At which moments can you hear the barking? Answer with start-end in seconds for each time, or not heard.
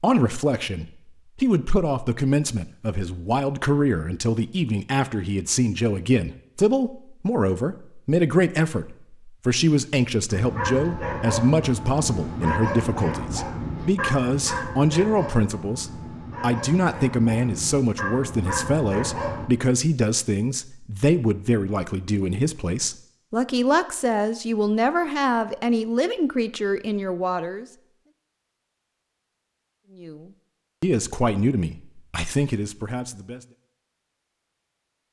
10.3-19.4.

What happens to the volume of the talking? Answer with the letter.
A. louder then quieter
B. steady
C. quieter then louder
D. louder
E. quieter
B.